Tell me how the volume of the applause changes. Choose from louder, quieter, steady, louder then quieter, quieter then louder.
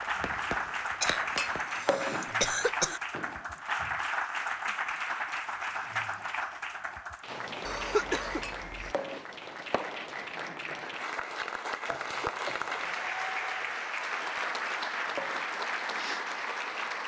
quieter then louder.